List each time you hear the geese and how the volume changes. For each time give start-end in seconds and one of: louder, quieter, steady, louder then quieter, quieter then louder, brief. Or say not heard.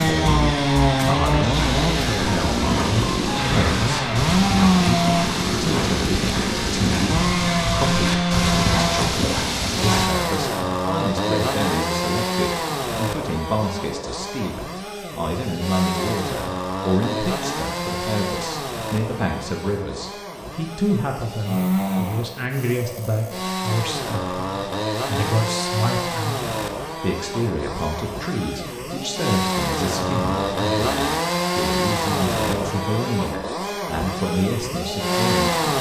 not heard.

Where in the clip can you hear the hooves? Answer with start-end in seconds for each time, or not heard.
1.5-10.1.